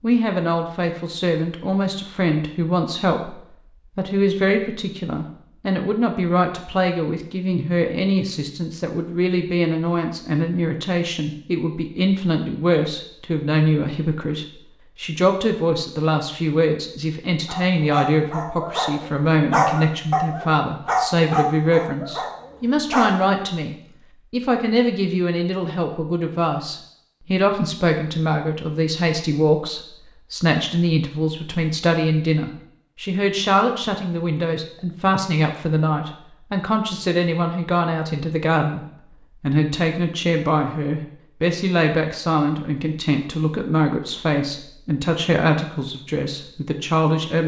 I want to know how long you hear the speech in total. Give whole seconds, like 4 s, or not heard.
47 s.